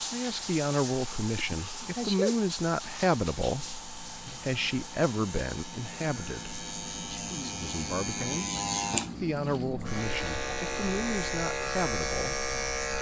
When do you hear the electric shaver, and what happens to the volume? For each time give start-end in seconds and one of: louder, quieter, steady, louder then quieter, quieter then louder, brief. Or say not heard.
0.0-12.9 louder.